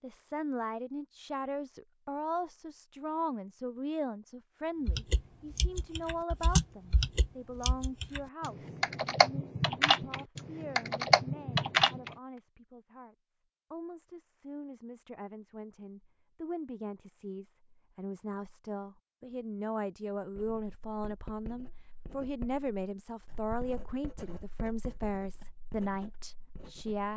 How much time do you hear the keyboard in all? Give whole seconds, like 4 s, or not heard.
7 s.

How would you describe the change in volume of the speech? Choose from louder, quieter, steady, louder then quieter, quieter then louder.
quieter then louder.